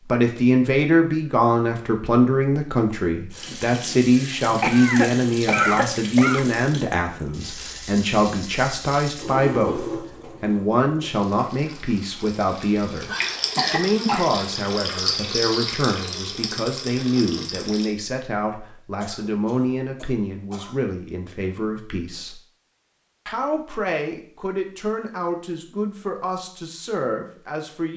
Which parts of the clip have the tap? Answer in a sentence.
The tap can be heard from 3.3 to 17.9 s.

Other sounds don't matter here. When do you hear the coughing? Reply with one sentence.
You can hear the coughing from 4.2 to 6.5 s, from 13.6 to 14.3 s and from 19.0 to 20.8 s.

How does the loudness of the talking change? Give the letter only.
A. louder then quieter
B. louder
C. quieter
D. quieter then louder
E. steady
C.